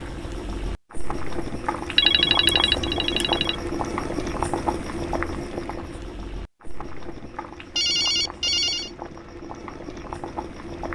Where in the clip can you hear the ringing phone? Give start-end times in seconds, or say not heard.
1.9-3.5, 7.8-8.9.